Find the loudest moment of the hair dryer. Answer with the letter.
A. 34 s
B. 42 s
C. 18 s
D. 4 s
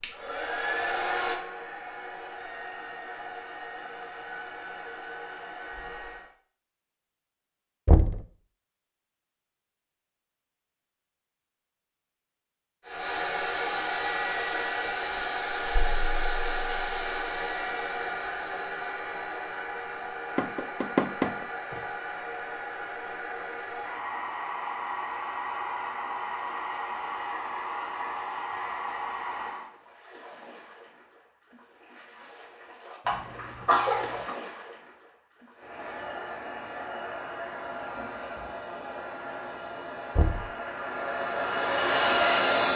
B.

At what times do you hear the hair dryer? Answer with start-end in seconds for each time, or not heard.
0.0-6.3, 12.8-29.7, 35.5-42.7.